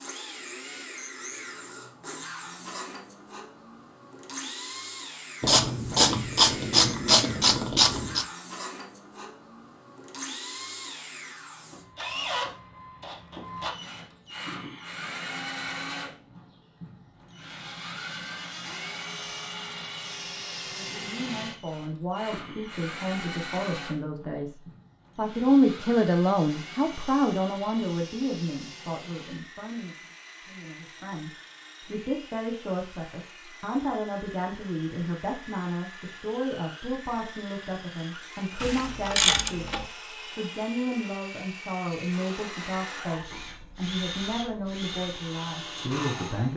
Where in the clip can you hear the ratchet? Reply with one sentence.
The ratchet can be heard from 5.4 to 8.2 s and from 38.6 to 39.9 s.